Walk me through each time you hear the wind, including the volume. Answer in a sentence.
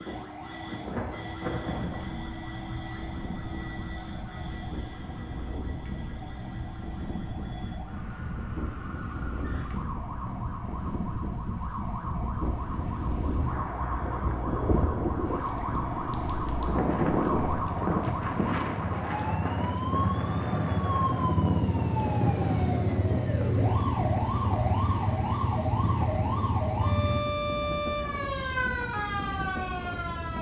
You can hear the wind from 0.0 to 30.3 s, getting louder then quieter.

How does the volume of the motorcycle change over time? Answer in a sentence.
The volume of the motorcycle goes up.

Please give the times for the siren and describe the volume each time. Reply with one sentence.
You can hear the siren from 0.0 to 30.3 s, getting louder.